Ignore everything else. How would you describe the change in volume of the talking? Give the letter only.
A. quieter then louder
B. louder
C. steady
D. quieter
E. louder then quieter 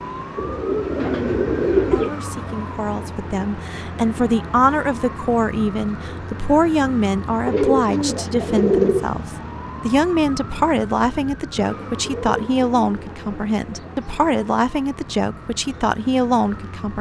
C.